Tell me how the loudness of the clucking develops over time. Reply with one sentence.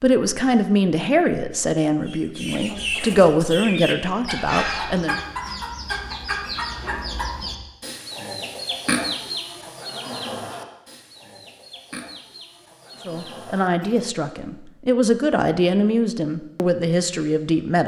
The loudness of the clucking goes down.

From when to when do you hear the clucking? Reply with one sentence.
You can hear the clucking from 2.0 to 13.9 s.